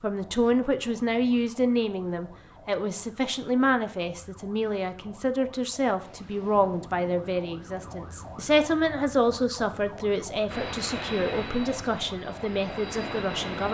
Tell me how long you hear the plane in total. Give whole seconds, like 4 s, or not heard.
3 s.